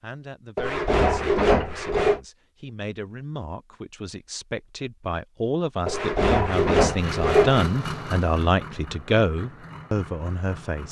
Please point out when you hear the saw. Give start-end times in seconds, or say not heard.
0.6-2.2, 5.8-7.7.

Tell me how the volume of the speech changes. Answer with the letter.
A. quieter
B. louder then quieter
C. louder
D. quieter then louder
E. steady
C.